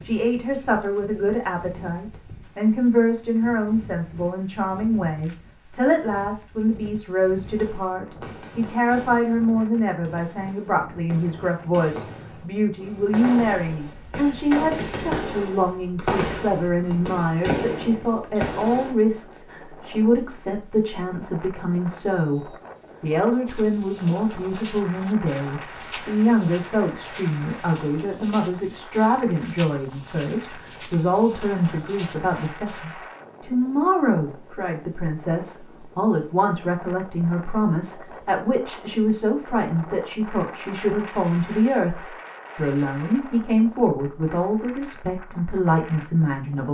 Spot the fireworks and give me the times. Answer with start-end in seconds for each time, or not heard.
7.5-18.9.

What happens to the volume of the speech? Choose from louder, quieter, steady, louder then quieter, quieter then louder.
steady.